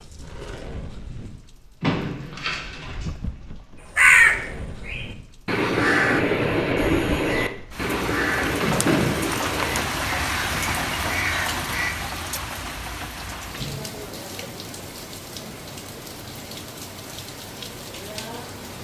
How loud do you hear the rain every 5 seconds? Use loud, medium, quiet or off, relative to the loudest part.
medium, loud, loud, medium.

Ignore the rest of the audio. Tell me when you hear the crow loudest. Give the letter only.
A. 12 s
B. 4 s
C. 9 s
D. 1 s
B.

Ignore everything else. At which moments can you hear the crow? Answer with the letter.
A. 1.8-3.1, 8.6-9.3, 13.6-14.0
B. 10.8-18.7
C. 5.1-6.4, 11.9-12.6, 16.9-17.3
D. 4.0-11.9
D.